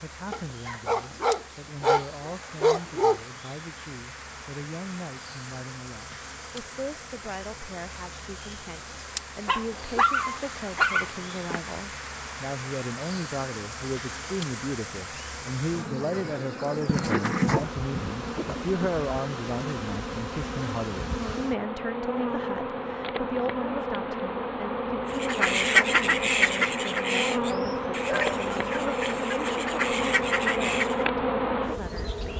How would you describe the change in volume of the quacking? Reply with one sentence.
The loudness of the quacking goes down, then up.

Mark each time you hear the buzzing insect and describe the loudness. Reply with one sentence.
The buzzing insect can be heard from 0.0 to 32.3 s, getting louder.